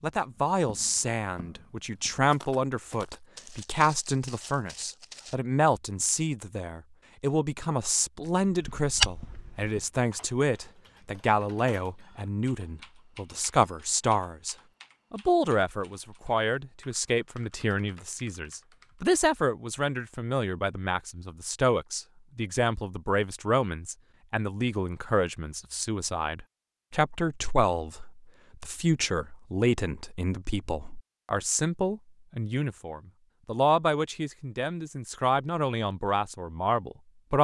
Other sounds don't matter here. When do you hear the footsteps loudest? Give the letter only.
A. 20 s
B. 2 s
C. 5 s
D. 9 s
D.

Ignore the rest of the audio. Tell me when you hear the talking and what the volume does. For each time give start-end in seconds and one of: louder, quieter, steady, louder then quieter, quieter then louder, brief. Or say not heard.
0.0-37.3 steady.